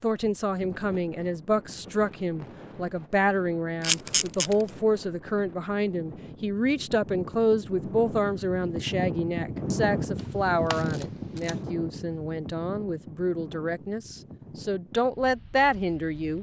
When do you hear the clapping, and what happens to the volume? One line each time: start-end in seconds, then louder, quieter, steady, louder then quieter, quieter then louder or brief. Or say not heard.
not heard.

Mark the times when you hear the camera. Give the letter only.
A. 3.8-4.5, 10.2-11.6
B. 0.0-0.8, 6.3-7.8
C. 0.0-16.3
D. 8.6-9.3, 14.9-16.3
A.